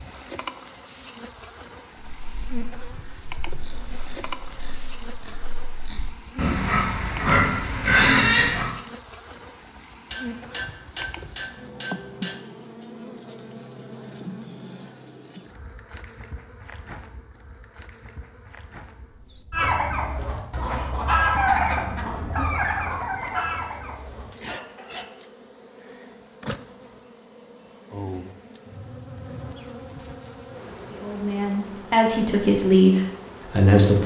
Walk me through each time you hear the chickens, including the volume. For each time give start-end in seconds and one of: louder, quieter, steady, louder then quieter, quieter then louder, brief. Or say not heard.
19.5-25.1 louder then quieter.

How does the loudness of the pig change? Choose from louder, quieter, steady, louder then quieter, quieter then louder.
louder.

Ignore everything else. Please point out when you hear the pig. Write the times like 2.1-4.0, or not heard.
1.9-8.7.